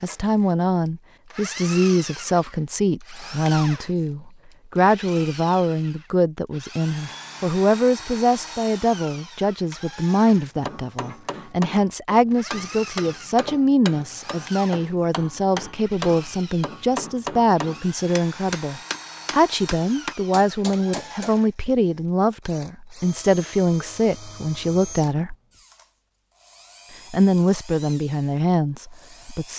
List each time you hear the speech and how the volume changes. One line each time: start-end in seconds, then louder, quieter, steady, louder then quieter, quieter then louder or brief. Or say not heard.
0.0-25.4 steady
27.1-29.5 brief.